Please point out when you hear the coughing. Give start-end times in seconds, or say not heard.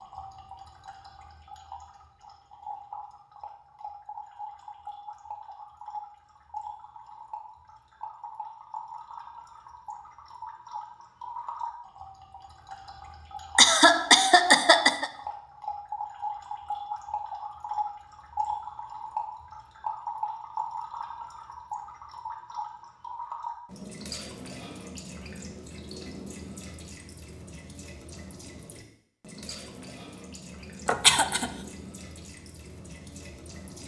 13.6-15.1, 30.9-31.5.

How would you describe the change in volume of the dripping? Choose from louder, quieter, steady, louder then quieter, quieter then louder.
louder then quieter.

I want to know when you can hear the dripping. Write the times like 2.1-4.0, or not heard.
0.0-33.8.